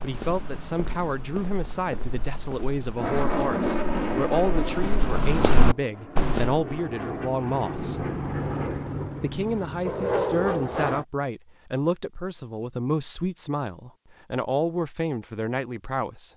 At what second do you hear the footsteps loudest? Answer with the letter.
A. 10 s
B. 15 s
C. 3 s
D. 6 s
D.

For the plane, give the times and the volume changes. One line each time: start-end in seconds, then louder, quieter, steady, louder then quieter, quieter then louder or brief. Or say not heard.
3.0-11.1 quieter then louder.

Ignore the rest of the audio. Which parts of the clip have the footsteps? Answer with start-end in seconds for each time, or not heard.
0.0-6.7.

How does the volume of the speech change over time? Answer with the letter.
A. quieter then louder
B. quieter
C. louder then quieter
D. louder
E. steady
E.